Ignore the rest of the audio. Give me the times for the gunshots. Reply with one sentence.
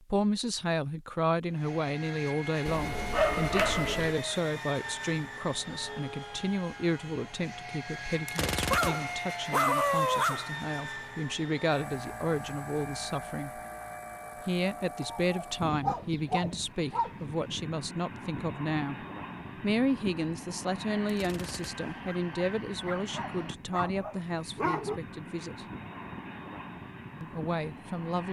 The gunshots can be heard from 8.2 to 9.2 s and from 21.1 to 22.0 s.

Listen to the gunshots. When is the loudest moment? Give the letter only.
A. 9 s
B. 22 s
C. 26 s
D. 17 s
A.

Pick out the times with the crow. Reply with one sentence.
The crow can't be heard in this clip.